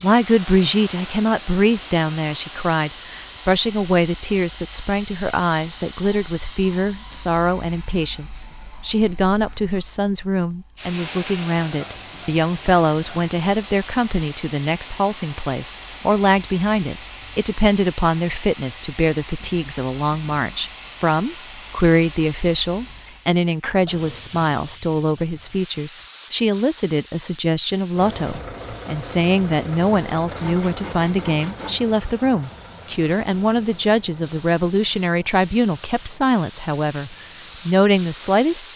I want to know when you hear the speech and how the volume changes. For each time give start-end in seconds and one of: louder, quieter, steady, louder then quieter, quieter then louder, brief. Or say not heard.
0.0-38.7 steady.